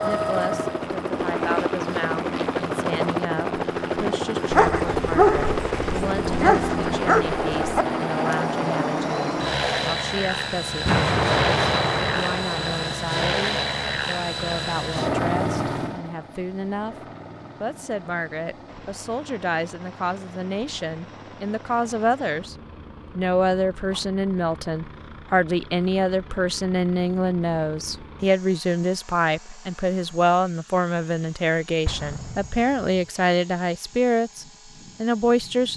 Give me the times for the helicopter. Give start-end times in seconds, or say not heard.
0.0-35.7.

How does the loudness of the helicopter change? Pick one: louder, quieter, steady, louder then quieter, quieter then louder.
quieter.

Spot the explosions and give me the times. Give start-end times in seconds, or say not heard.
10.8-12.9, 31.9-33.0.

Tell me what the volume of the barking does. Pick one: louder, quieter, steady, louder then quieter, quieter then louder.
quieter.